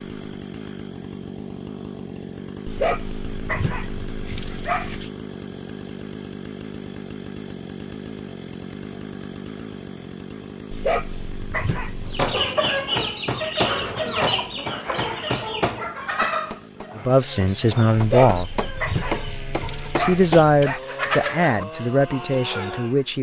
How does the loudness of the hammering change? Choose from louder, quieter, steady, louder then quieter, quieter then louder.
quieter then louder.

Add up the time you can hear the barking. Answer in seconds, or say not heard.
7 s.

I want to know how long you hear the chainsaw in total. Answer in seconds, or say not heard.
23 s.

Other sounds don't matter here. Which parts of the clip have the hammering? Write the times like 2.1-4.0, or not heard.
12.1-20.4.